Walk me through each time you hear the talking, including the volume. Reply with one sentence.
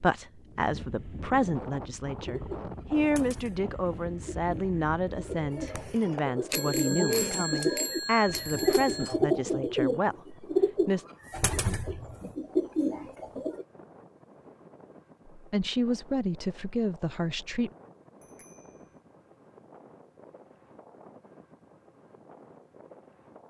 You can hear the talking from 0.0 to 11.1 s, at a steady volume; and briefly from 15.3 to 17.7 s.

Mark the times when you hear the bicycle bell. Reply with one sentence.
The bicycle bell can be heard from 6.5 to 9.2 s and from 18.2 to 19.0 s.